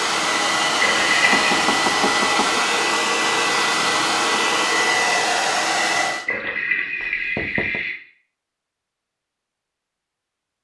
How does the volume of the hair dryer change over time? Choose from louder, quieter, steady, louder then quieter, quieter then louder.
steady.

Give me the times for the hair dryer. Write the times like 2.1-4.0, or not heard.
0.0-6.2.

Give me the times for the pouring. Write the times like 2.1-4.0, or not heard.
0.8-1.5, 6.2-8.0.